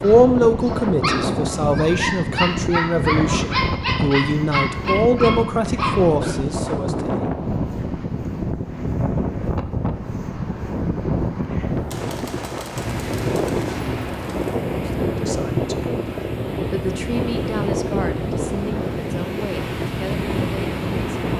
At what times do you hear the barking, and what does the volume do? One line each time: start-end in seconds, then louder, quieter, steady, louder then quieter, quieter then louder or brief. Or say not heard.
0.0-6.3 steady.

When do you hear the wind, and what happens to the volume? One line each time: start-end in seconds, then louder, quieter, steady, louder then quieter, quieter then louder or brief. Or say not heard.
0.0-21.3 steady.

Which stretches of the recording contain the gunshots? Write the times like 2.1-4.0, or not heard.
11.9-14.7.